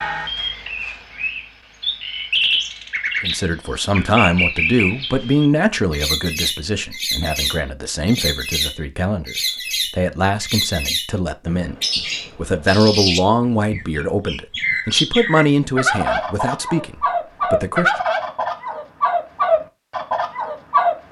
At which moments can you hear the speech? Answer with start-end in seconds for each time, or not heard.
3.2-17.9.